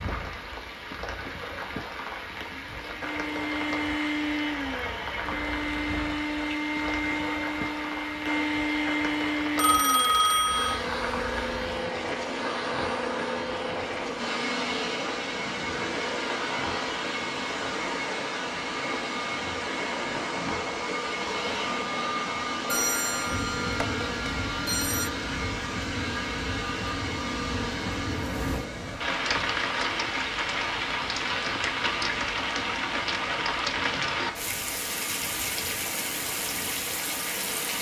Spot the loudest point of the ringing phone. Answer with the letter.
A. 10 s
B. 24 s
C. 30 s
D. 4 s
A.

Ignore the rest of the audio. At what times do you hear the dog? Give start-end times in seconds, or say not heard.
not heard.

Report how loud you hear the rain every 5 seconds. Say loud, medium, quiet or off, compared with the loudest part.
medium, medium, medium, medium, medium, loud, loud, loud.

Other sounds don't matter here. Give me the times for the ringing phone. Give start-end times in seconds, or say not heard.
9.6-10.8, 22.7-25.1.